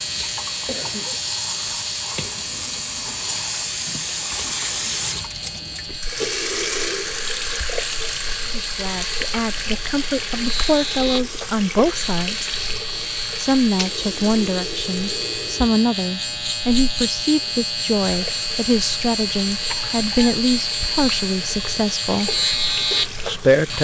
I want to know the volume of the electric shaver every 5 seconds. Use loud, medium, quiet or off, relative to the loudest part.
medium, medium, medium, loud, loud.